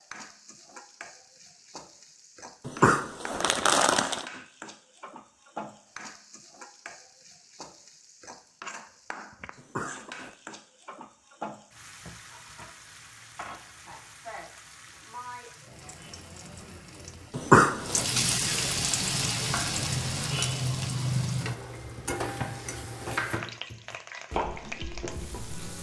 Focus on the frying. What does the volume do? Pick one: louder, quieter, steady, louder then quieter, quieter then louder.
louder.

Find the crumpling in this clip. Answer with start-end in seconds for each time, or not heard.
2.6-4.2, 9.6-10.3, 17.3-18.1.